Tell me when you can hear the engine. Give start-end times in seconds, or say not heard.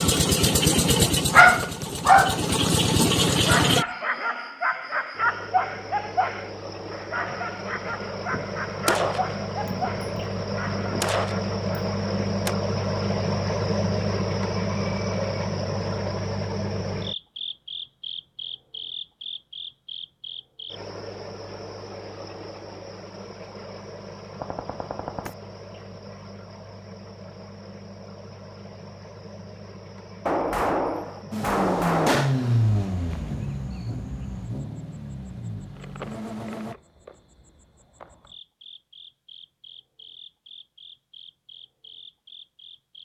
0.0-3.9, 31.3-36.8.